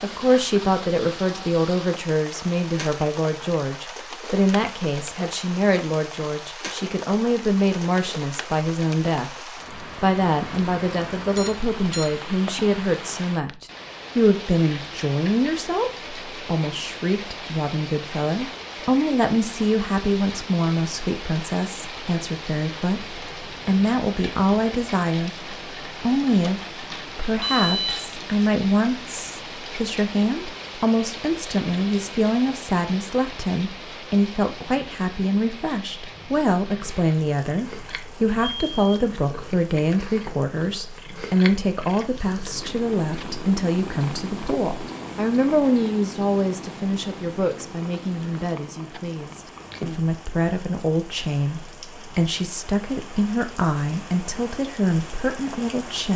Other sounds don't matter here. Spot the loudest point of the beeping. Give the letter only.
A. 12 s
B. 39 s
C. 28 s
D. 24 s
C.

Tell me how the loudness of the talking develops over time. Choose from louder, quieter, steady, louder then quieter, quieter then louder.
steady.